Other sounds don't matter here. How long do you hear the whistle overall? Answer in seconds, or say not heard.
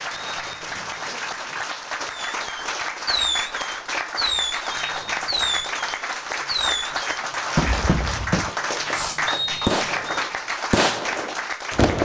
3 s.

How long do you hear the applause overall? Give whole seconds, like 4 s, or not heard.
12 s.